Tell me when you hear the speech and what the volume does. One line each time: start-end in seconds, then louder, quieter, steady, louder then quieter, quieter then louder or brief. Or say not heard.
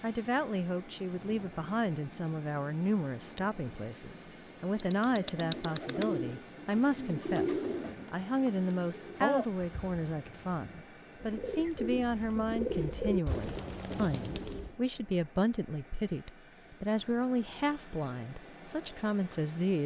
0.0-19.8 steady.